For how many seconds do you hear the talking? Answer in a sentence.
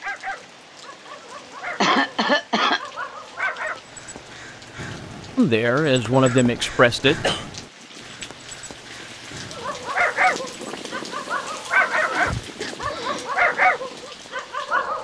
You can hear the talking for 2 seconds altogether.